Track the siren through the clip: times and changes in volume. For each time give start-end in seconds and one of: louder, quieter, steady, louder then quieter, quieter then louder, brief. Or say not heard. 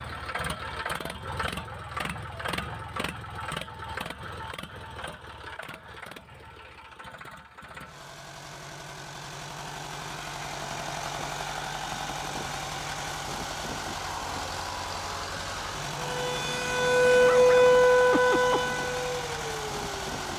16.0-20.1 louder then quieter.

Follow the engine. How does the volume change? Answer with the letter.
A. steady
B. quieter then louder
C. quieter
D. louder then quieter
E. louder
B.